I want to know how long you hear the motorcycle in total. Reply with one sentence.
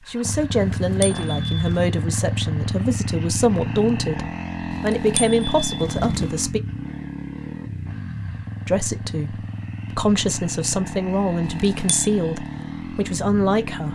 The motorcycle can be heard for 14 seconds in total.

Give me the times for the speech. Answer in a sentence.
You can hear the speech from 0.1 to 6.6 s and from 8.7 to 13.8 s.